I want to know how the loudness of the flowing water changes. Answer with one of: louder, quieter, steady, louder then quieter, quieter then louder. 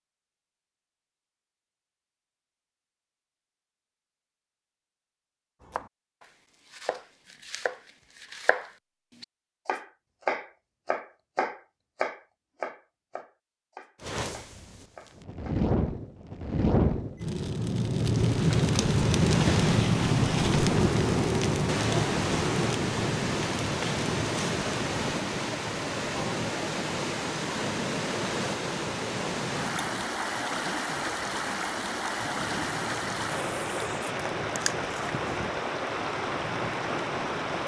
steady.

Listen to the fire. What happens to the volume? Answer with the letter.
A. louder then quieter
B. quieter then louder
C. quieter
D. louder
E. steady
C.